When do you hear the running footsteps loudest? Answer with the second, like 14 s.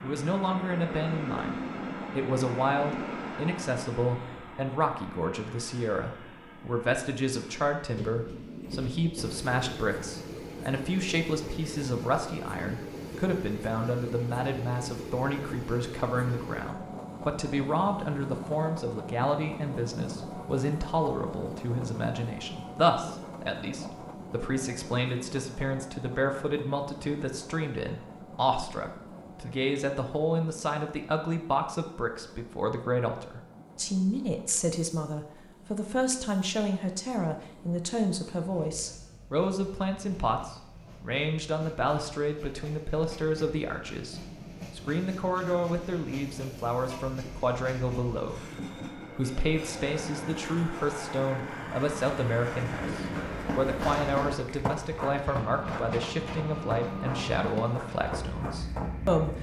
54 s.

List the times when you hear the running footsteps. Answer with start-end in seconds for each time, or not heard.
52.5-59.3.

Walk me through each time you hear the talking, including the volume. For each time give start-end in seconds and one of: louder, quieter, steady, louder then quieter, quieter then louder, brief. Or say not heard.
0.0-59.3 steady.